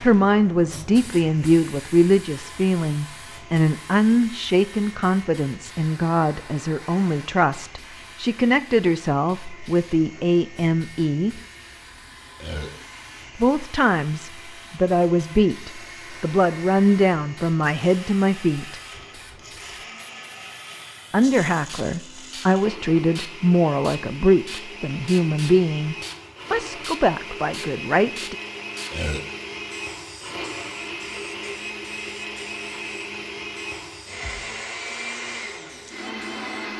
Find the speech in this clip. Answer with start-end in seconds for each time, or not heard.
0.0-11.3, 13.3-18.8, 21.1-28.4.